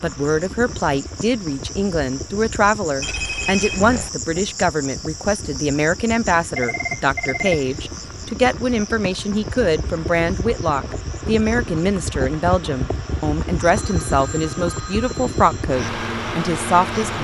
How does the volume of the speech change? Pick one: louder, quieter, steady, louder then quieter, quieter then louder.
steady.